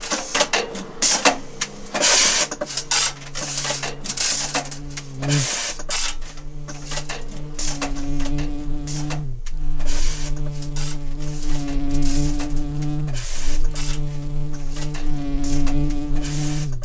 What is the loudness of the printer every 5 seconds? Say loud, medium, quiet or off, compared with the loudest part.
loud, medium, quiet, quiet.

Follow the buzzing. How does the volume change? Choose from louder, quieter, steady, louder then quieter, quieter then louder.
louder.